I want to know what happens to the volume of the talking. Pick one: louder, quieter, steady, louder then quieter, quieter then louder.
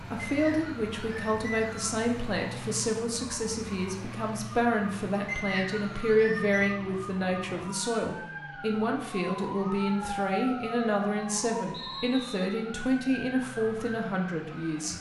steady.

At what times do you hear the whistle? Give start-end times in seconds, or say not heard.
0.2-2.0, 5.2-6.8, 11.7-12.6.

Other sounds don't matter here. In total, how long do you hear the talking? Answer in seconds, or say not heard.
15 s.